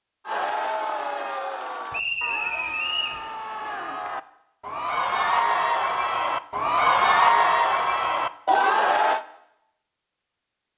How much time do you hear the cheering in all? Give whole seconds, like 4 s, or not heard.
9 s.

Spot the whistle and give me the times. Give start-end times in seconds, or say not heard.
1.9-3.2.